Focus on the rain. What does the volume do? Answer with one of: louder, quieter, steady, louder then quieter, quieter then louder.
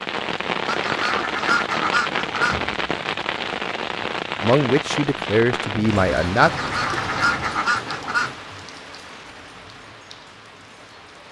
quieter.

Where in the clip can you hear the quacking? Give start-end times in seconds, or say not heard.
0.7-2.6, 6.4-8.3.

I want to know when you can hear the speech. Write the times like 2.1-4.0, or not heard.
4.4-6.5.